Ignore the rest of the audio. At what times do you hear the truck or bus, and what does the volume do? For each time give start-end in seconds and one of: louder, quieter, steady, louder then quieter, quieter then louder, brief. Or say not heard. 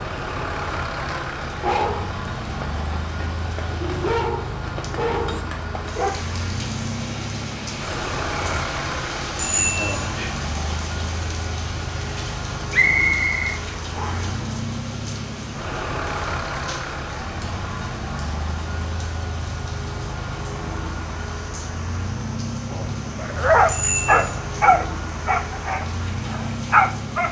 0.0-27.2 steady.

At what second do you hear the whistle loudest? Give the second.
13 s.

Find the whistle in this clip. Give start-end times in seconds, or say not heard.
12.7-14.3.